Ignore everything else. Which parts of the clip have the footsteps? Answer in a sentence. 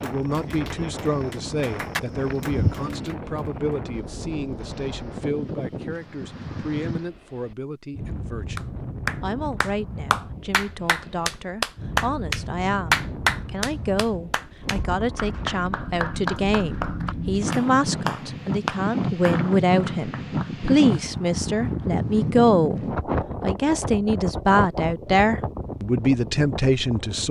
You can hear the footsteps from 0.0 to 2.9 s.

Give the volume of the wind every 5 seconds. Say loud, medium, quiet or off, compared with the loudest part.
medium, medium, medium, loud, loud, medium.